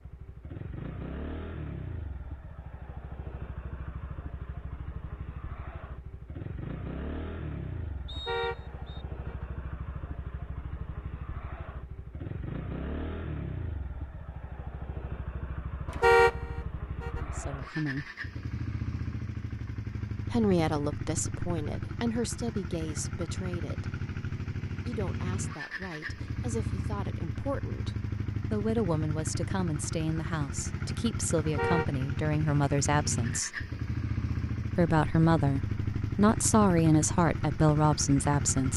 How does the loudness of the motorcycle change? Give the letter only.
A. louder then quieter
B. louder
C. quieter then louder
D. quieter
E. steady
B.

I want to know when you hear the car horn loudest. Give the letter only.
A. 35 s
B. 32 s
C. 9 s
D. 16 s
D.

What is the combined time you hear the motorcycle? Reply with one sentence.
The motorcycle can be heard for 39 seconds in total.